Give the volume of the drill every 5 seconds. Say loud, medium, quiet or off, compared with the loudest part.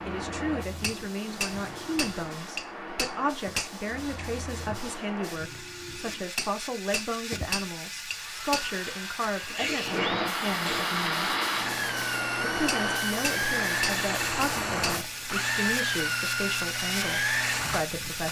quiet, quiet, loud, loud.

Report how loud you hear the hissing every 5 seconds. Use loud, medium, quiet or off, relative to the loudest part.
medium, medium, loud, loud.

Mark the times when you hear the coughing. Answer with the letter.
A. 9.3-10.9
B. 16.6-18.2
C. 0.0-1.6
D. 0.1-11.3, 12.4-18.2
A.